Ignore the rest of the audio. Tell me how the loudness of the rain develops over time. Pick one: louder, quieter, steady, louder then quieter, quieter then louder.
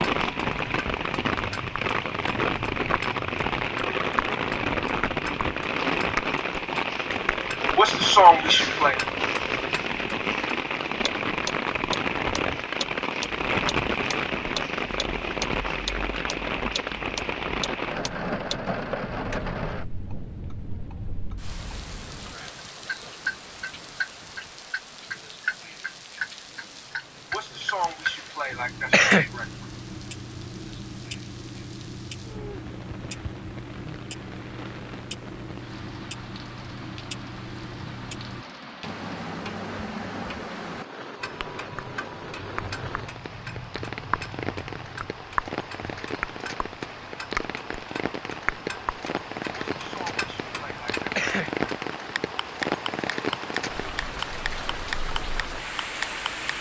quieter then louder.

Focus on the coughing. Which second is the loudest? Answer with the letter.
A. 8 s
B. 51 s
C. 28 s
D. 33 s
A.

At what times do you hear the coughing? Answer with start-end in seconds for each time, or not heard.
7.8-9.0, 27.3-29.4, 49.5-51.6.